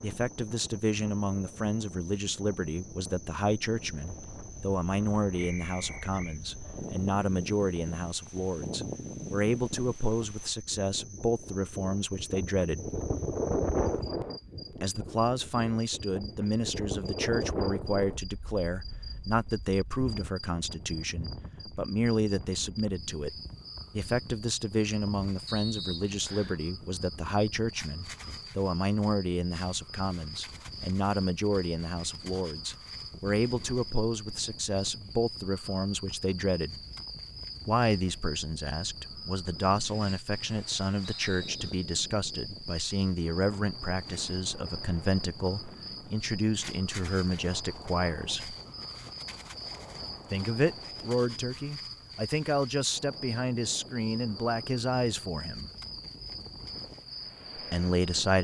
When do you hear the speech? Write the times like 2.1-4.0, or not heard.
0.0-12.9, 14.8-36.8, 37.6-48.5, 50.3-55.6, 57.5-58.3.